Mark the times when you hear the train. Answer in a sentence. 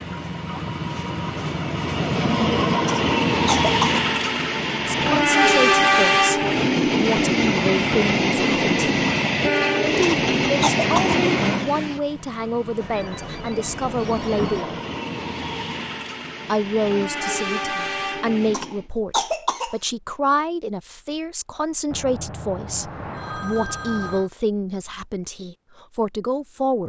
The train can be heard from 0.0 to 18.9 s.